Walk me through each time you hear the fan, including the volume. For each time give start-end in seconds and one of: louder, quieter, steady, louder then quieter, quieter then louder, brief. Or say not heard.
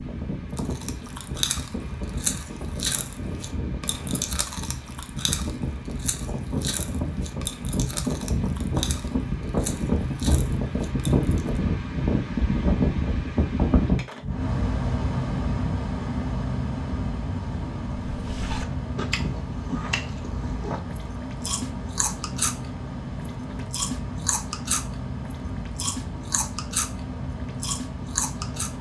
0.0-28.7 louder then quieter.